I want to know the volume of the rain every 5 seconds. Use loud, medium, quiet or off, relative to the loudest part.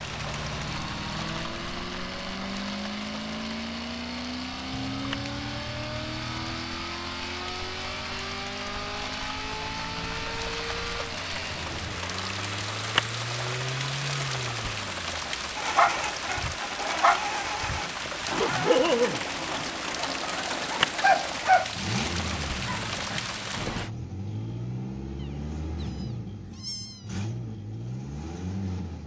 medium, medium, loud, loud, loud, off.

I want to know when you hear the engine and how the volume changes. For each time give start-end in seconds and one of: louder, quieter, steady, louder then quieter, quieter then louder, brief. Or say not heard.
0.0-29.0 steady.